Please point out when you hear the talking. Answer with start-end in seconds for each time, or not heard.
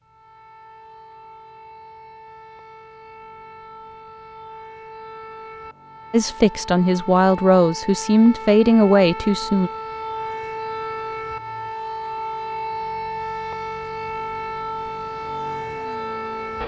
6.1-9.7.